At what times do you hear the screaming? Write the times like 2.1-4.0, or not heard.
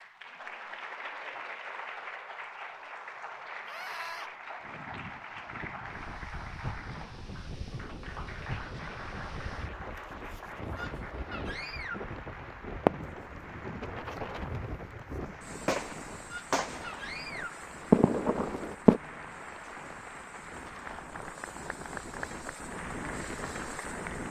3.6-4.3, 10.8-12.1, 16.3-17.6.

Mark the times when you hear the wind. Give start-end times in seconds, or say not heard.
4.6-24.2.